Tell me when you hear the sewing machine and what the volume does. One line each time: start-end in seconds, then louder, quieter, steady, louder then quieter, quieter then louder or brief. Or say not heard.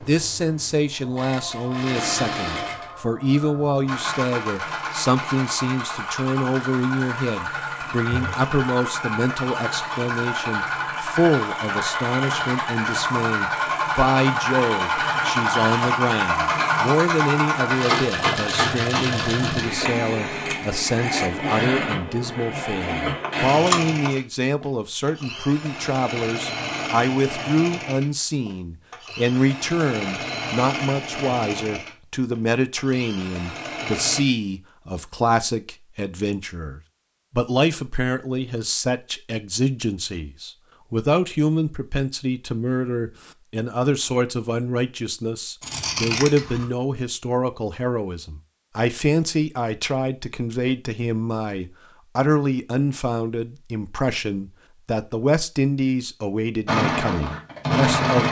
0.0-34.2 louder then quieter
56.6-58.2 brief.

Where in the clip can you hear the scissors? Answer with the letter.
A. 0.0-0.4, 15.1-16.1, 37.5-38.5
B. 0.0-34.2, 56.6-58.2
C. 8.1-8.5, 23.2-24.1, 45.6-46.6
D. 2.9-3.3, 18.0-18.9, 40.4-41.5
C.